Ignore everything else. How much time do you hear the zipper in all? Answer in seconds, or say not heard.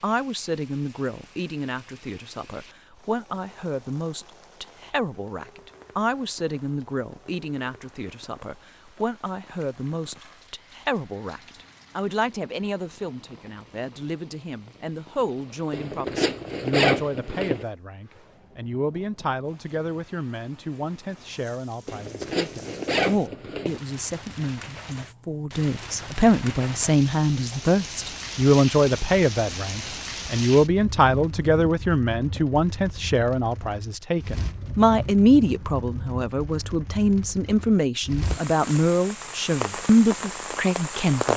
4 s.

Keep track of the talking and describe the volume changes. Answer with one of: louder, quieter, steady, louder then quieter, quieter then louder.
louder.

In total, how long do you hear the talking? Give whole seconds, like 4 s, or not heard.
41 s.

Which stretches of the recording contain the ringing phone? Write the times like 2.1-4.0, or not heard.
not heard.